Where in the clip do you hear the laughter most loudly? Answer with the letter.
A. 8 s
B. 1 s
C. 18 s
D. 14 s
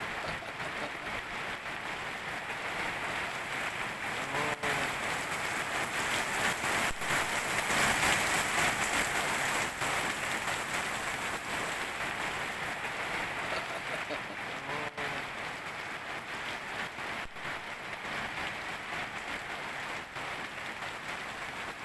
D.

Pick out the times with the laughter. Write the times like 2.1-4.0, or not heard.
0.2-1.1, 13.5-14.6.